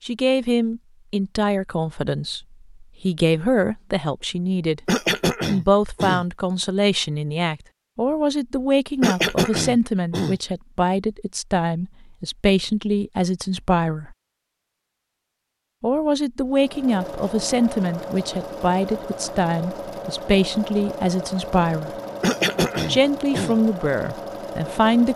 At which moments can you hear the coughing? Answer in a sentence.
You can hear the coughing from 4.8 to 6.2 s, from 9.0 to 10.4 s and from 22.2 to 23.6 s.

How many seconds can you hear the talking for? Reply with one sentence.
The talking can be heard for 22 seconds in total.